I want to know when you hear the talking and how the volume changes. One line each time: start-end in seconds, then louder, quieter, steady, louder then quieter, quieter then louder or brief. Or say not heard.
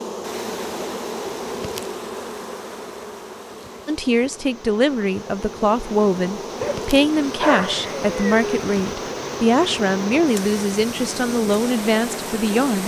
3.9-12.8 steady.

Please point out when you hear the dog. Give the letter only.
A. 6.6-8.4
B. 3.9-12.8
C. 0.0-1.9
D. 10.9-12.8
A.